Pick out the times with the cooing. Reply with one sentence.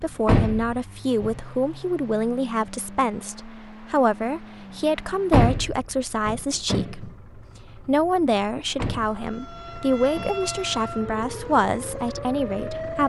The cooing can't be heard in this clip.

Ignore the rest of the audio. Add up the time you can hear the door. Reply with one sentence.
You can hear the door for 5 seconds altogether.